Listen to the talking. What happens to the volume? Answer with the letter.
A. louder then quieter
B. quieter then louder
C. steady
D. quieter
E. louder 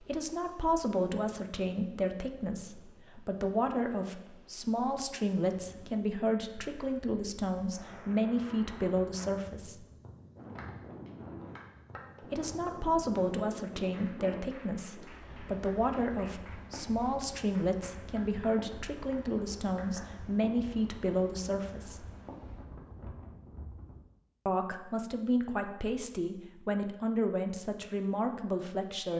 C.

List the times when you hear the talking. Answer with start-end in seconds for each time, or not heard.
0.0-9.8, 12.2-22.1, 24.4-29.1.